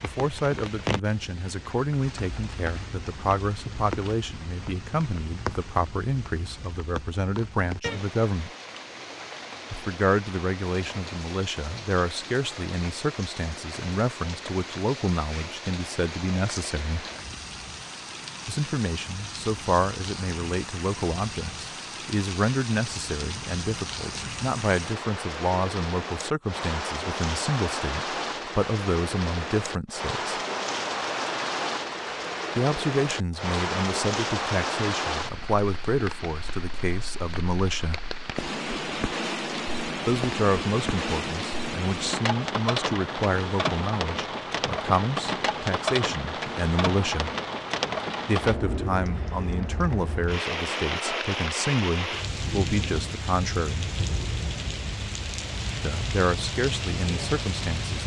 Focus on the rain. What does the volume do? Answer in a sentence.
The volume of the rain goes up.